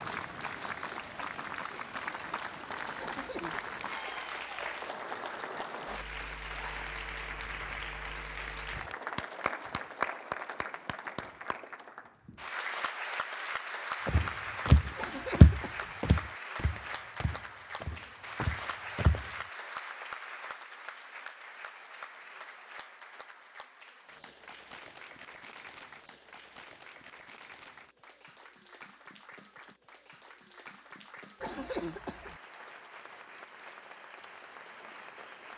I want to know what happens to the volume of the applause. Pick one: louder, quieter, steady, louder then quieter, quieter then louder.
quieter.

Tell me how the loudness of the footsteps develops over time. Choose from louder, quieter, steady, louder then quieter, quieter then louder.
quieter then louder.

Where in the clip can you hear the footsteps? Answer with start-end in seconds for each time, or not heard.
14.1-19.3.